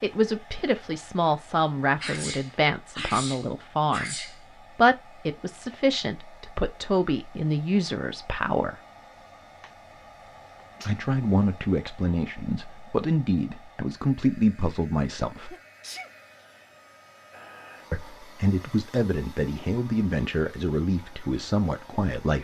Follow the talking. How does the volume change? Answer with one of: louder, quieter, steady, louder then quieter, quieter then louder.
steady.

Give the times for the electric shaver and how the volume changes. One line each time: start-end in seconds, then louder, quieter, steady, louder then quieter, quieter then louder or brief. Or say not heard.
not heard.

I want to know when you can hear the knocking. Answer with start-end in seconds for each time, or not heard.
not heard.